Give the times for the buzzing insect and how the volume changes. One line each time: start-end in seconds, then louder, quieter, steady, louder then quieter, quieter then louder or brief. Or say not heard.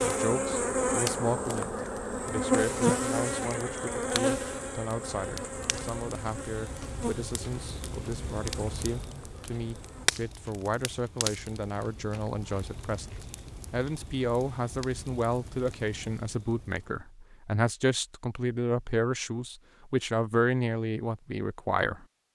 0.0-10.1 quieter.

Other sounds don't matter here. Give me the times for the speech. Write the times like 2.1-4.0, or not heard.
0.0-22.1.